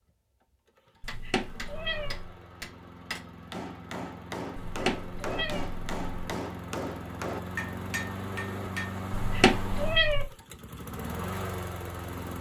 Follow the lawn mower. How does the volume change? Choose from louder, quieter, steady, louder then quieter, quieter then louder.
louder.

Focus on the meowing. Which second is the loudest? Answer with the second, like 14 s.
10 s.